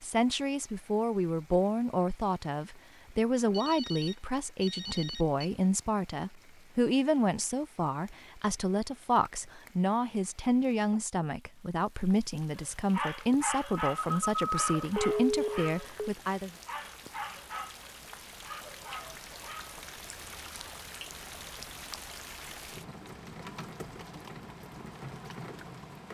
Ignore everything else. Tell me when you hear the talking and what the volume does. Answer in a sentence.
The talking can be heard from 0.0 to 16.5 s, at a steady volume.